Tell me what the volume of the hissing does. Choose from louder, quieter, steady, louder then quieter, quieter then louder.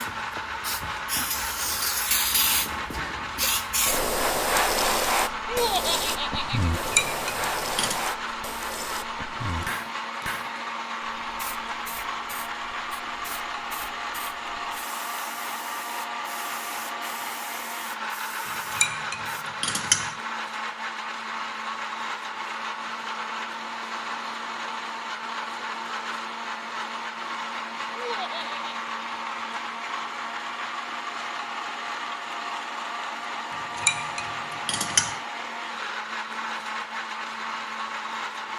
quieter.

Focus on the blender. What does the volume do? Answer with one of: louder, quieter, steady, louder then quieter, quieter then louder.
steady.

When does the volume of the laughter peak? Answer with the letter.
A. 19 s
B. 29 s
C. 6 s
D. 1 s
C.